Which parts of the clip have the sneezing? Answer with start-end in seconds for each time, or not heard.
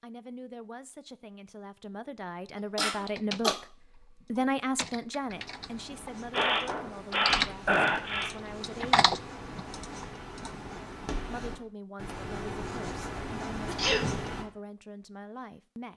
2.8-3.5, 6.3-8.3, 13.7-14.2.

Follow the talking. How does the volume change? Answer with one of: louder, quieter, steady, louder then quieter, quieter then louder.
louder then quieter.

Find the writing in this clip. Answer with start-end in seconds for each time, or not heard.
5.2-14.4.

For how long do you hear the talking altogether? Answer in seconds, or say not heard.
14 s.